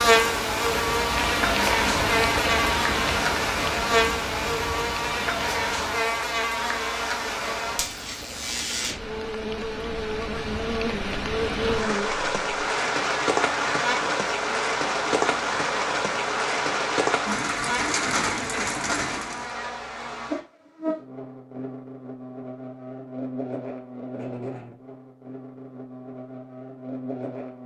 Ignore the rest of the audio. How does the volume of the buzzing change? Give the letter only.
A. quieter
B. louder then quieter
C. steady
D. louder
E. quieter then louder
A.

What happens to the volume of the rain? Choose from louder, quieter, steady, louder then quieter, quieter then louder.
quieter then louder.